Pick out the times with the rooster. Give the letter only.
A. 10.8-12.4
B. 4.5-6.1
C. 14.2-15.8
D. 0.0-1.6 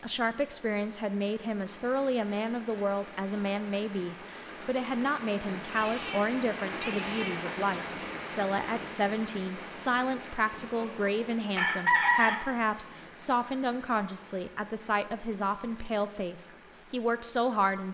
A.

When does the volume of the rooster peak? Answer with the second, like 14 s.
12 s.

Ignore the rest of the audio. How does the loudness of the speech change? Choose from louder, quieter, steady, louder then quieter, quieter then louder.
steady.